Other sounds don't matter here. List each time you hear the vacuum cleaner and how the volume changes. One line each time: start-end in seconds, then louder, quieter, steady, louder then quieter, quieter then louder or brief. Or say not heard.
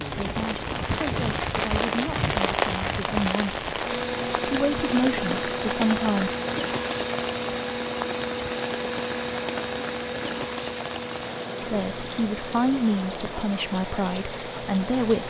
3.8-15.2 quieter.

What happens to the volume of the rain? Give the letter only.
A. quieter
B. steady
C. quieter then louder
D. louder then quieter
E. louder
A.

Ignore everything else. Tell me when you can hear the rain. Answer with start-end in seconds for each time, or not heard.
0.0-15.2.